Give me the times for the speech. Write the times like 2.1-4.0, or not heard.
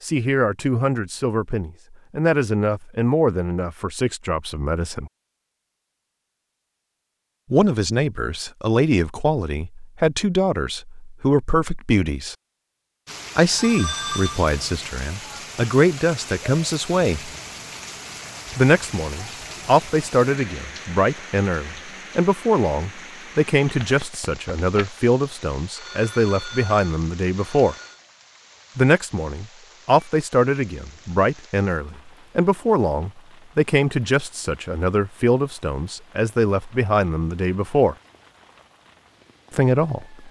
0.0-5.1, 7.5-12.3, 13.3-17.3, 18.6-27.8, 28.8-38.0, 39.5-40.1.